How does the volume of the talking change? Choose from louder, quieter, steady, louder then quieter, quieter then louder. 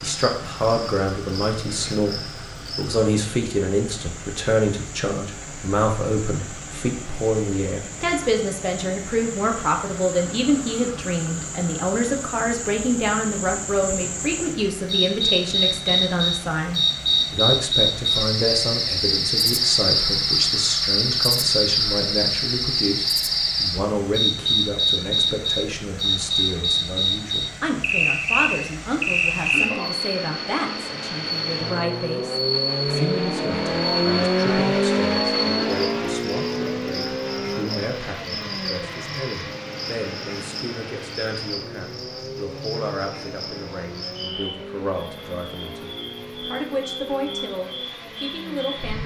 quieter.